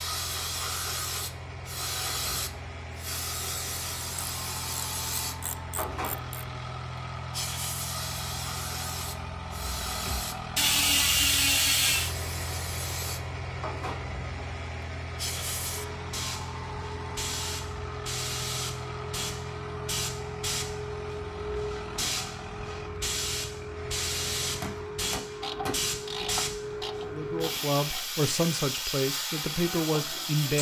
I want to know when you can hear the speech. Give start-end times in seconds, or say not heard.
27.1-30.5.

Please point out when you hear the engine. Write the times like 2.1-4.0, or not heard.
0.0-25.1.